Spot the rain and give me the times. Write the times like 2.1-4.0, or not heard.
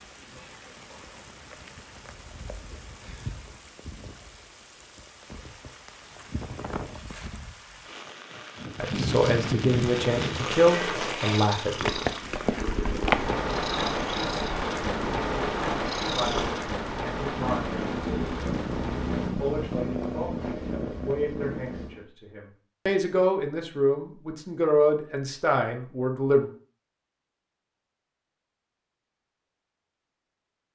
0.0-19.4.